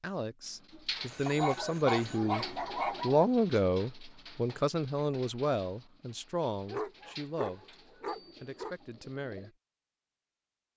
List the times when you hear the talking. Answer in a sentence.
The talking can be heard from 0.0 to 9.5 s.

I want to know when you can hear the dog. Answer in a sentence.
You can hear the dog from 1.2 to 3.2 s and from 6.5 to 8.8 s.